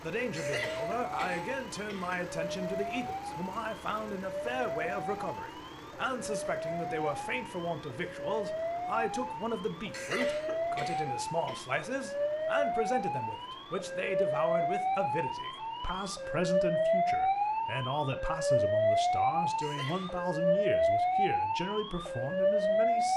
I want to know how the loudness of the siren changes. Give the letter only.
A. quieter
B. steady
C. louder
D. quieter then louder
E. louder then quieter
C.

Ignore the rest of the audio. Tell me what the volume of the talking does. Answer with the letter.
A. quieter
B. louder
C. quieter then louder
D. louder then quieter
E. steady
E.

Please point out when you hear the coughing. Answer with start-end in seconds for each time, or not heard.
0.3-2.4, 9.9-11.6, 19.6-20.4.